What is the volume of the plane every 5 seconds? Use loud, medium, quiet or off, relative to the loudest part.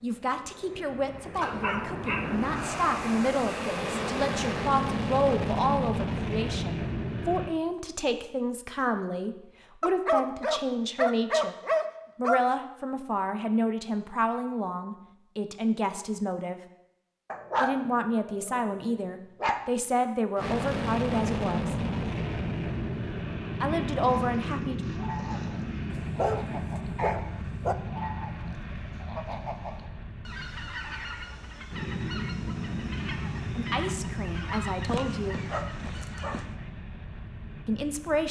loud, loud, off, off, loud, medium, medium, medium.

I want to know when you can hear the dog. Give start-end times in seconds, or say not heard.
1.4-2.4, 9.8-12.4, 17.3-19.6, 25.9-27.8, 34.9-36.5.